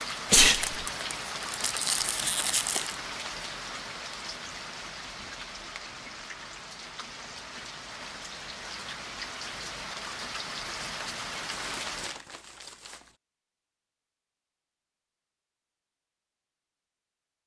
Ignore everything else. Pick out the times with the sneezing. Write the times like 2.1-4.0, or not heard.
0.3-0.8.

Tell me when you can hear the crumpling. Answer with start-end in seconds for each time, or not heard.
0.6-3.0, 11.5-13.2.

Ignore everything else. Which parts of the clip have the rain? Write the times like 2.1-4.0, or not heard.
0.0-12.2.